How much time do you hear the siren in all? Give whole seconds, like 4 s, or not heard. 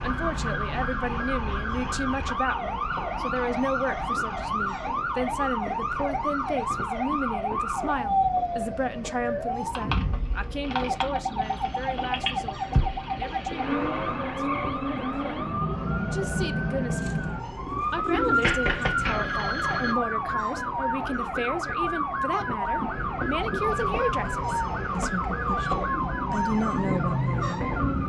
28 s.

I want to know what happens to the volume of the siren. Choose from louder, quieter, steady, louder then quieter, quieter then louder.
steady.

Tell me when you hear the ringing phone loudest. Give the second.
19 s.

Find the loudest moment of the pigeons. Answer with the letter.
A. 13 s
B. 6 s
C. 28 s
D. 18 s
D.